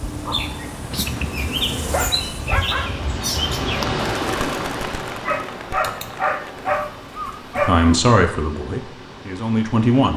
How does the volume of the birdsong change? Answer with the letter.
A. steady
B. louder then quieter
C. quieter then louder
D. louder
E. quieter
E.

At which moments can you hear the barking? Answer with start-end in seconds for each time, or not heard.
0.9-2.9, 5.2-7.8.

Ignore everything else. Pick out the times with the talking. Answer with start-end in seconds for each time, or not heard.
7.6-10.1.